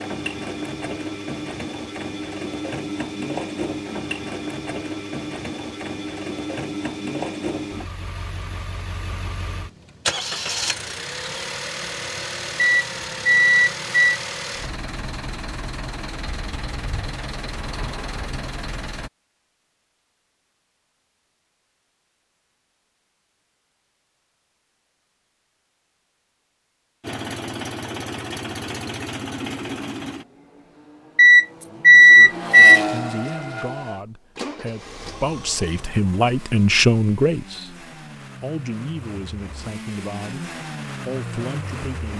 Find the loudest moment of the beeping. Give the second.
32 s.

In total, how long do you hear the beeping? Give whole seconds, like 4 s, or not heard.
3 s.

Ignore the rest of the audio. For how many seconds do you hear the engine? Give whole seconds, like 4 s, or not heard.
34 s.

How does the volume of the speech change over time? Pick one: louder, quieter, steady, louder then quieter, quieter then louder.
louder then quieter.